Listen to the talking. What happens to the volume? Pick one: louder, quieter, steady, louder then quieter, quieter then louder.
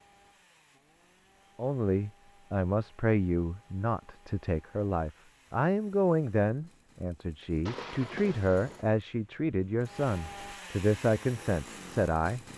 steady.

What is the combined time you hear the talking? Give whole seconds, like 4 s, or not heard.
11 s.